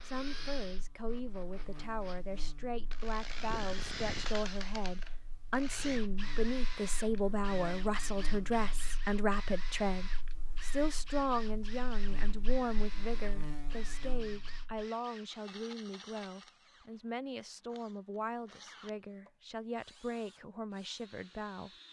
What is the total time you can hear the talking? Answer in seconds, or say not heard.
22 s.